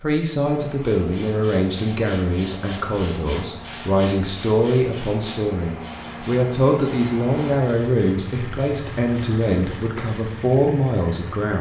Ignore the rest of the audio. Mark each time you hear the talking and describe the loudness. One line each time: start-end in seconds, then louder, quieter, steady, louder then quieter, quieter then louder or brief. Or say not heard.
0.0-11.5 steady.